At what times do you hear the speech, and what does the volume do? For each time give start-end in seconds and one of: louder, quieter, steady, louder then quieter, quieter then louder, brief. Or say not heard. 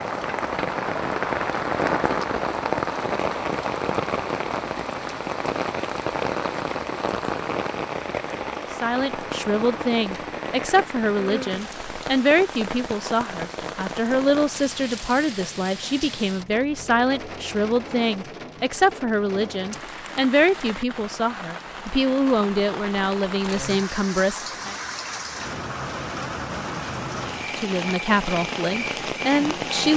8.6-24.8 steady
27.4-29.9 brief.